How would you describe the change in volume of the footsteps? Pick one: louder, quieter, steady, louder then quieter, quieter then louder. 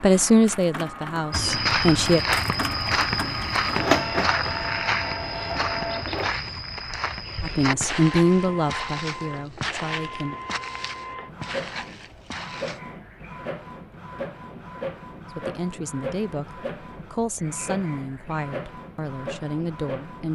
quieter.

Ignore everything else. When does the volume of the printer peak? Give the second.
4 s.